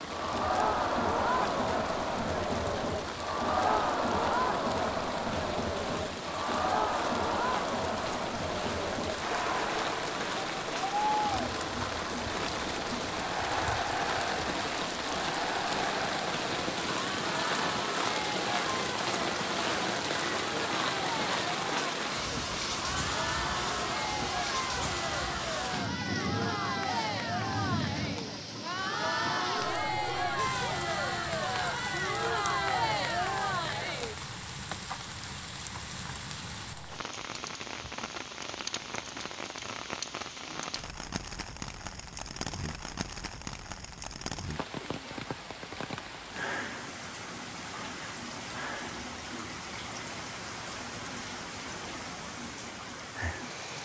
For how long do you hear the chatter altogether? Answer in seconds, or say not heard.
34 s.